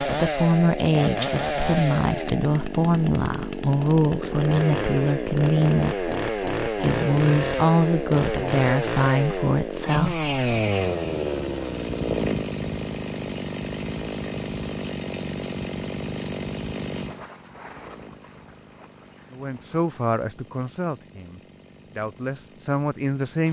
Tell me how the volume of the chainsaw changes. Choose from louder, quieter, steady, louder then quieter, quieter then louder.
quieter.